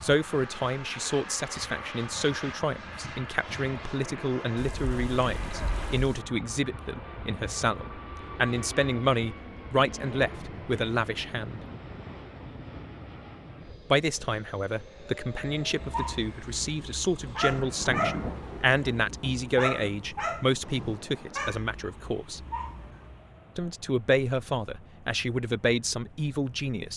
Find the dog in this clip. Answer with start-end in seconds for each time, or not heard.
15.4-23.4.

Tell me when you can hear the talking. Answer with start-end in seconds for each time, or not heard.
0.0-11.6, 13.9-22.4, 23.6-26.9.